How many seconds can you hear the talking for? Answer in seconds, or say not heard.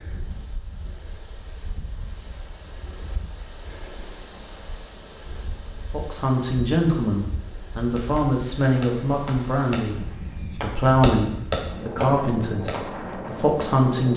8 s.